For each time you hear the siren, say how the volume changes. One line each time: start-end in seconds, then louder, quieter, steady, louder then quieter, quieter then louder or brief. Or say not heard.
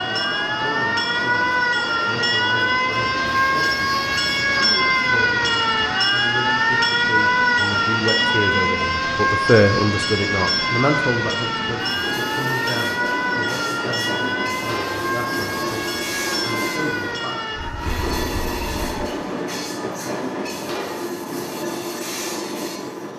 0.0-19.1 quieter.